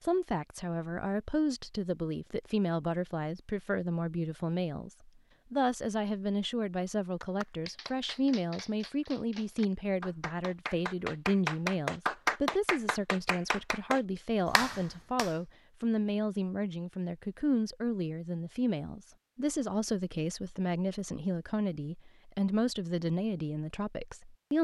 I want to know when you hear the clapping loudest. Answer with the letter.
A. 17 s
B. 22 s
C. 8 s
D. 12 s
D.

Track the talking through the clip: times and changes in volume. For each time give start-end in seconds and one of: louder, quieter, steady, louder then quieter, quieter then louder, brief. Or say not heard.
0.0-24.5 steady.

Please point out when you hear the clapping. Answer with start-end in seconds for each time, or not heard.
7.2-15.3.